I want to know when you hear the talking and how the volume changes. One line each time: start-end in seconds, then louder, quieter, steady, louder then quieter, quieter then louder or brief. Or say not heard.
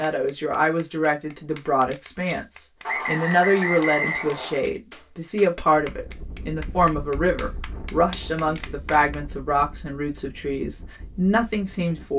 0.0-12.1 steady.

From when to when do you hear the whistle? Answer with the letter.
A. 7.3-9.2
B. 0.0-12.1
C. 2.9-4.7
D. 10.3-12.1
C.